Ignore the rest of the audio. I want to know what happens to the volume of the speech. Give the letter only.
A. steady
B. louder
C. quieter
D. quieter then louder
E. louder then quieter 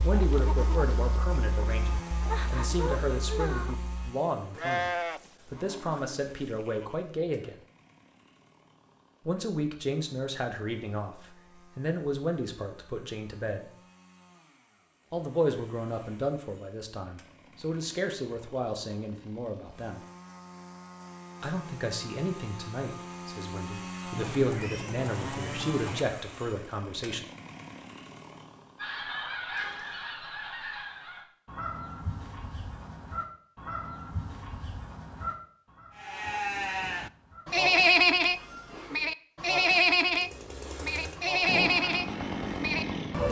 A.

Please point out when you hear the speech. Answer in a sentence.
The speech can be heard from 0.0 to 7.5 s, from 9.2 to 13.7 s, from 15.1 to 20.0 s and from 21.4 to 27.2 s.